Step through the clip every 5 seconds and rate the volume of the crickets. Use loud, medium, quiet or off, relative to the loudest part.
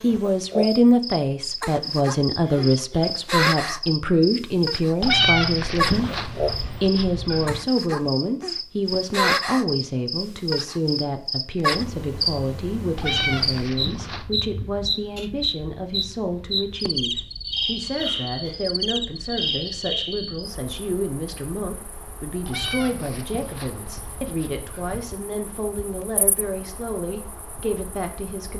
loud, loud, loud, loud, quiet, quiet.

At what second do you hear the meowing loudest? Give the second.
5 s.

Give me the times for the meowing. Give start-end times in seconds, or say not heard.
5.0-7.6, 12.9-14.2, 22.4-25.1.